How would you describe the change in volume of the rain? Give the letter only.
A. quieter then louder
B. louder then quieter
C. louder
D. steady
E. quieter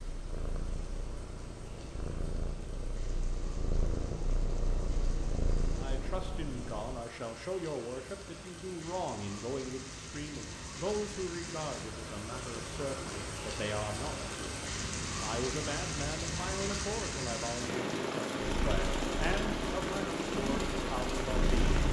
C.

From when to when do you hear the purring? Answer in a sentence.
You can hear the purring from 0.0 to 7.0 s and from 18.4 to 21.8 s.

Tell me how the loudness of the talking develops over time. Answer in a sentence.
The volume of the talking stays about the same.